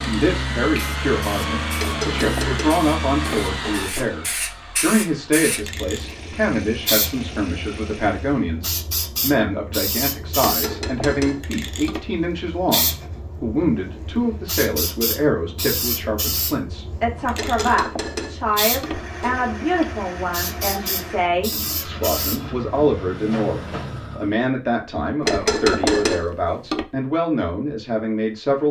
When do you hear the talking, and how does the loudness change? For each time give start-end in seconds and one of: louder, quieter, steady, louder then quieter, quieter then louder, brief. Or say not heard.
0.0-28.6 steady.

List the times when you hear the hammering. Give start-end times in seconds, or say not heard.
1.8-4.2, 10.3-12.1, 17.3-19.5, 25.2-26.9.